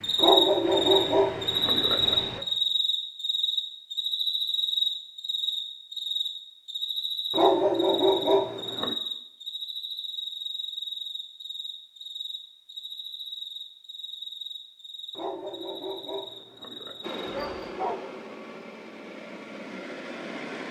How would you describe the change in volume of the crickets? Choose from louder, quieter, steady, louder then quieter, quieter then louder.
quieter.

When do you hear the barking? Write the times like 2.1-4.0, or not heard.
0.1-2.5, 7.3-8.9, 15.2-18.1.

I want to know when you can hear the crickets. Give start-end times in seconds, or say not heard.
0.0-17.7.